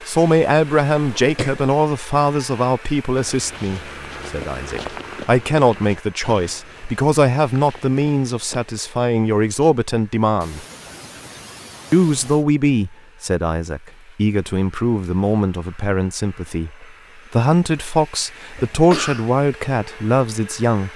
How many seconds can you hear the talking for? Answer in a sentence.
The talking can be heard for 20 seconds in total.